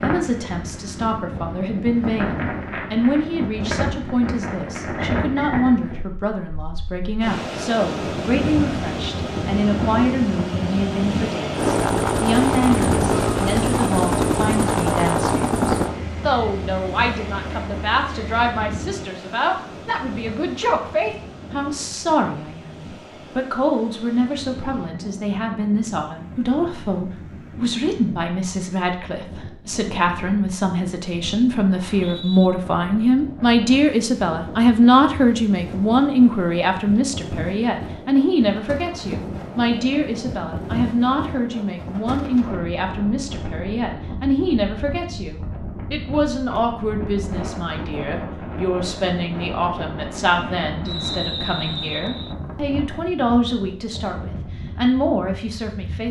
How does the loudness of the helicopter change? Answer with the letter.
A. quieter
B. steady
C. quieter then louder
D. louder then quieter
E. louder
A.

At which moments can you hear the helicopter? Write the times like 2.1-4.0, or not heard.
11.5-18.5.